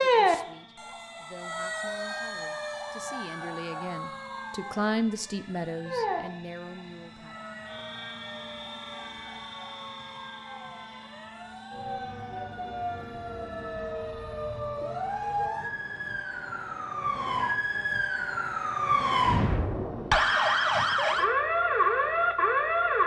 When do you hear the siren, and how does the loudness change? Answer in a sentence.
You can hear the siren from 0.0 to 23.0 s, getting louder.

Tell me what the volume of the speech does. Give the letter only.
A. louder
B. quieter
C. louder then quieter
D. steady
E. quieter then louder
C.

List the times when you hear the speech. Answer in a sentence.
The speech can be heard from 0.0 to 7.3 s.